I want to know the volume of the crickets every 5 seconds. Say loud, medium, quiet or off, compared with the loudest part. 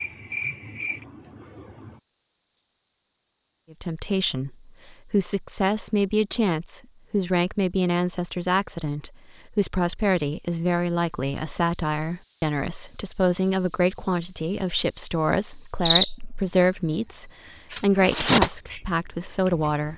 quiet, quiet, loud, loud.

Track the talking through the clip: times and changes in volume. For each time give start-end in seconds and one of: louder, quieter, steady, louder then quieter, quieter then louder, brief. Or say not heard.
3.7-19.9 steady.